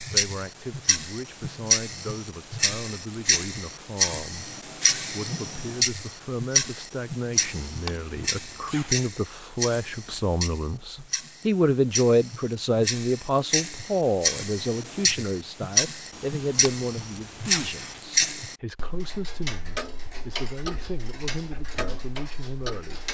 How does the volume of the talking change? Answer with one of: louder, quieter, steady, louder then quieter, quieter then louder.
louder then quieter.